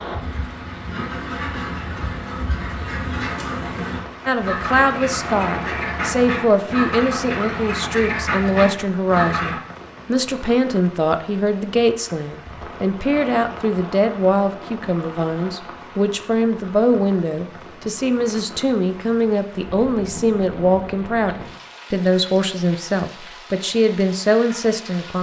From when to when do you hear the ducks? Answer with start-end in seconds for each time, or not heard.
0.2-9.6.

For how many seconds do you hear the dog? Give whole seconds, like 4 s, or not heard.
not heard.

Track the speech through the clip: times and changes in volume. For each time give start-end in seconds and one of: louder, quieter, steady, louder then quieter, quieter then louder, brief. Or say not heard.
4.2-25.1 steady.